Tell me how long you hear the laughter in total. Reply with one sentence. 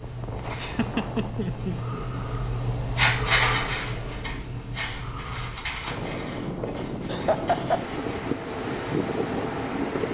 The laughter can be heard for 3 seconds in total.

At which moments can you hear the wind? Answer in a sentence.
You can hear the wind from 0.0 to 10.0 s.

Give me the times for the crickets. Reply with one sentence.
The crickets can be heard from 0.0 to 10.0 s.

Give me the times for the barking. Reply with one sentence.
You can't hear the barking here.